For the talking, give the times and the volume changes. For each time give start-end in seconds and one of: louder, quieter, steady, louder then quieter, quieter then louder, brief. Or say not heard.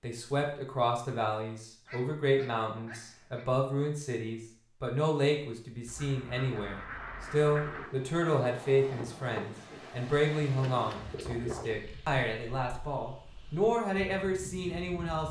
0.0-15.2 steady.